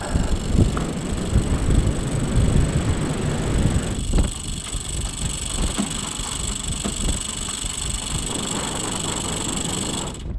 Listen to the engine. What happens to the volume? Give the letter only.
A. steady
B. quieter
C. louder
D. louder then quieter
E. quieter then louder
C.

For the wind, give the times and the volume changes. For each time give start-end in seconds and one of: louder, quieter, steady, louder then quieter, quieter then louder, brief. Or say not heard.
0.0-10.3 quieter then louder.